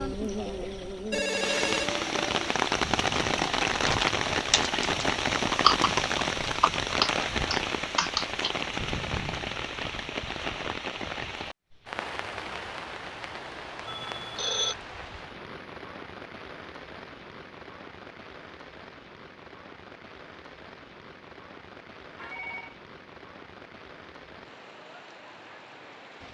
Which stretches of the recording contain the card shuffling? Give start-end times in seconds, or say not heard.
not heard.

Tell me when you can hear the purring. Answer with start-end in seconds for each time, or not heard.
not heard.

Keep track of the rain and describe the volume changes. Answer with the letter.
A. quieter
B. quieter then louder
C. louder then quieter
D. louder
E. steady
A.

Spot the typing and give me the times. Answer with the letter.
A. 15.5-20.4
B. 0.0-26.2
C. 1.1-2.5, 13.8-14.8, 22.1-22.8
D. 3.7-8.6
D.